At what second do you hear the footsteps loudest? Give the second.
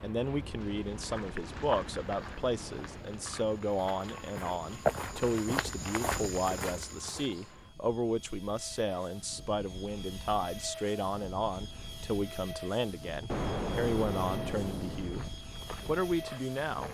5 s.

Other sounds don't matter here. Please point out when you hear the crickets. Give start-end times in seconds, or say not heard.
not heard.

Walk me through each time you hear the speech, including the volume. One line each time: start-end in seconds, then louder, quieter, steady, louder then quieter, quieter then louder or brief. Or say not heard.
0.0-16.8 steady.